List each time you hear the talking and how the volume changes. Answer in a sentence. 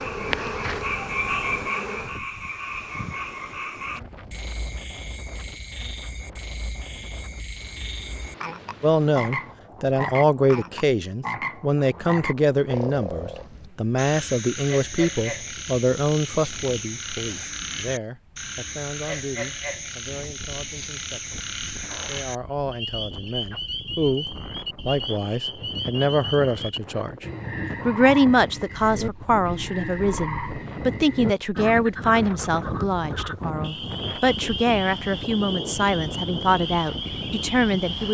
You can hear the talking from 8.8 to 21.4 s, getting quieter; briefly from 22.1 to 24.2 s; briefly from 24.9 to 27.2 s; and from 27.9 to 38.0 s, at a steady volume.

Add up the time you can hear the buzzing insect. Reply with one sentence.
The buzzing insect can be heard for 2 seconds in total.